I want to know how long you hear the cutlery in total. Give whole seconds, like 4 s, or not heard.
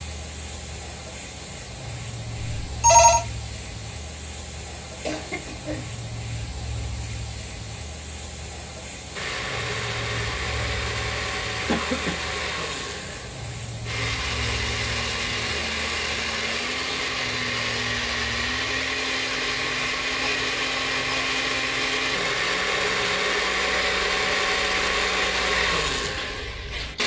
not heard.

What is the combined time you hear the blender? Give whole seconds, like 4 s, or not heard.
18 s.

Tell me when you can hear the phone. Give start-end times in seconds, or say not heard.
2.4-3.2.